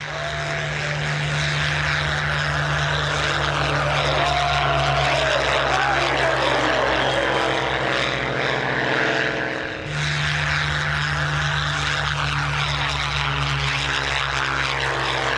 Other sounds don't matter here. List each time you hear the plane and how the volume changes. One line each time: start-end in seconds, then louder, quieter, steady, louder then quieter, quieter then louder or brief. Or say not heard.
0.0-15.3 steady.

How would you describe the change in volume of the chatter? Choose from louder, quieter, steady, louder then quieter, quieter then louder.
louder.